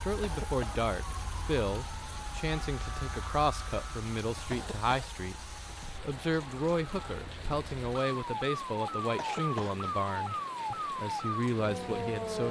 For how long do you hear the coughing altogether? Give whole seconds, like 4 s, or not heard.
2 s.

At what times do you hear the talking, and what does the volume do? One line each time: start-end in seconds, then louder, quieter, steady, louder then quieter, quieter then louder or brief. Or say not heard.
0.0-12.4 steady.